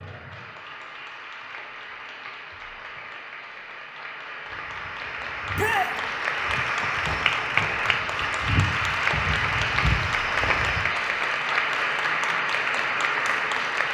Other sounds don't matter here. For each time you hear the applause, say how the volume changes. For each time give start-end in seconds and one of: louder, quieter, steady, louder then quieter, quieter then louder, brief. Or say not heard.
0.0-13.8 louder.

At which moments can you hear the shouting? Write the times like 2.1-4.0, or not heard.
5.5-6.0.